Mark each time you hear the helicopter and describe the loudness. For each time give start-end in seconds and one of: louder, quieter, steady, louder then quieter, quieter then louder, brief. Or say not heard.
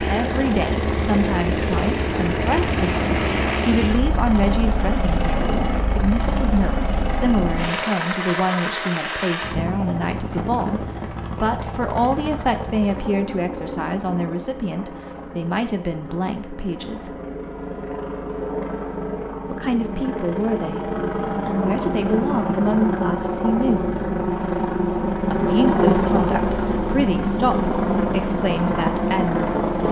0.0-29.8 quieter then louder.